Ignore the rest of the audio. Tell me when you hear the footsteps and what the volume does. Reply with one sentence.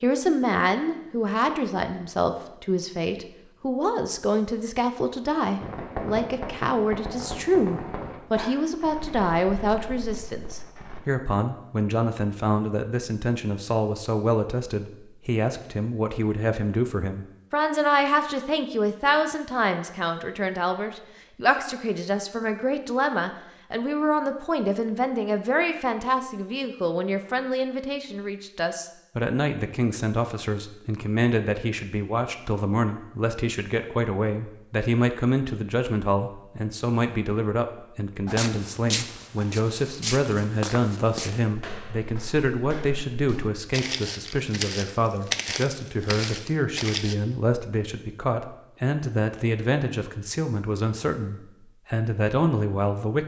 The footsteps can be heard from 38.2 to 47.1 s, getting quieter then louder.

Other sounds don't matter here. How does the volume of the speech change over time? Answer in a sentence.
The loudness of the speech stays about the same.